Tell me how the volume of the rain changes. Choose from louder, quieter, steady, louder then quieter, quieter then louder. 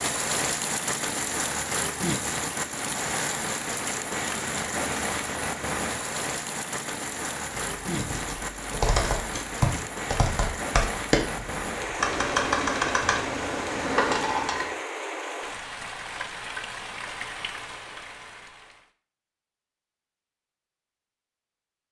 quieter.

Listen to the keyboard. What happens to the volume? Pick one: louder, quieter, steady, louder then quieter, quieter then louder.
steady.